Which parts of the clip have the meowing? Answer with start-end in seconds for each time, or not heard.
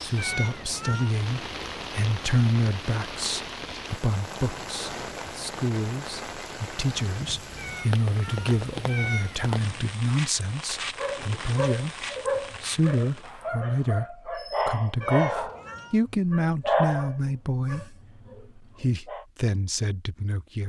0.1-1.1, 7.5-9.9, 15.0-16.1.